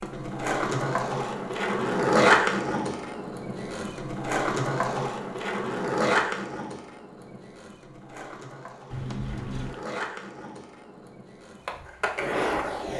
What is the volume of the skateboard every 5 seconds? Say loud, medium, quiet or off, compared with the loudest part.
loud, medium, medium.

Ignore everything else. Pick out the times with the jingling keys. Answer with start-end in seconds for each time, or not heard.
8.9-9.8.